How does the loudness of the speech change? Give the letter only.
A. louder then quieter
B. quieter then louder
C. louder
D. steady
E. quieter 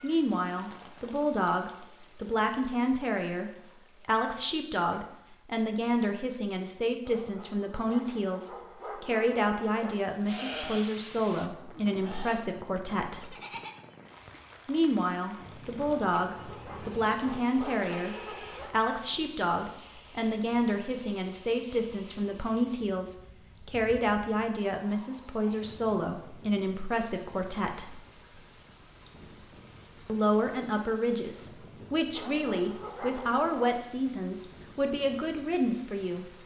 D.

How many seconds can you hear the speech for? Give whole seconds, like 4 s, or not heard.
33 s.